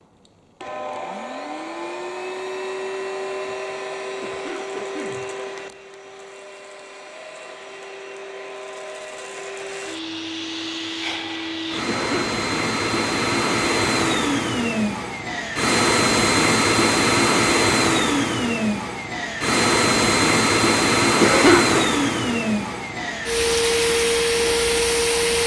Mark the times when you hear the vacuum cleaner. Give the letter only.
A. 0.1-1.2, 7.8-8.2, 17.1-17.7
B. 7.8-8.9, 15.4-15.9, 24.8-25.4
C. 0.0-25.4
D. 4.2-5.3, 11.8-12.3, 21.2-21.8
C.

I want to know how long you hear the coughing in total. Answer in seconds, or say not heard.
2 s.